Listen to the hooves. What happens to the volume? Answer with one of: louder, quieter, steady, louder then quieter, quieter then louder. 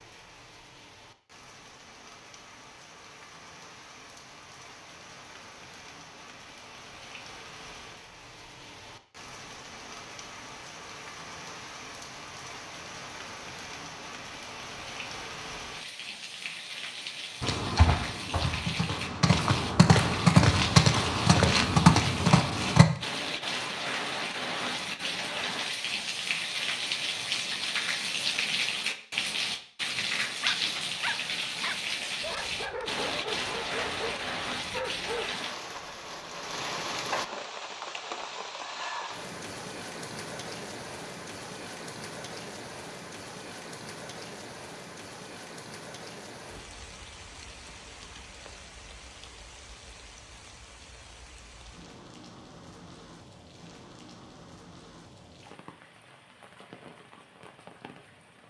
louder.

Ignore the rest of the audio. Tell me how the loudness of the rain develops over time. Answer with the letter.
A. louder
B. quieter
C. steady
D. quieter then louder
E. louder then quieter
E.